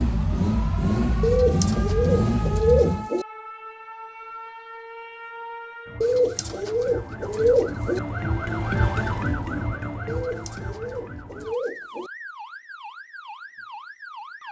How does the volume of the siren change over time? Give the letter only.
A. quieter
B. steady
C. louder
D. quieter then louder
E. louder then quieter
E.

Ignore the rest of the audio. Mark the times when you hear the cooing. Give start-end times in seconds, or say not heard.
1.2-3.2, 6.0-8.0, 10.1-12.1.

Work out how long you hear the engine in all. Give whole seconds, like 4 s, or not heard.
3 s.